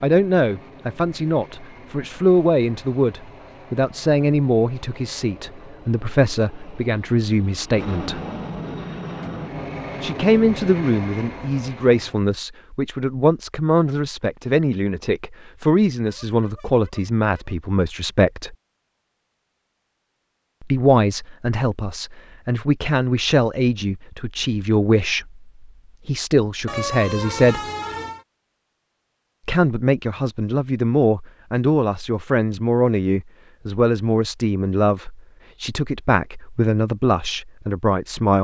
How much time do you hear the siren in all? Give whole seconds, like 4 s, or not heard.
not heard.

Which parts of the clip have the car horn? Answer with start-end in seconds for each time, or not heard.
16.1-17.6, 26.6-28.2.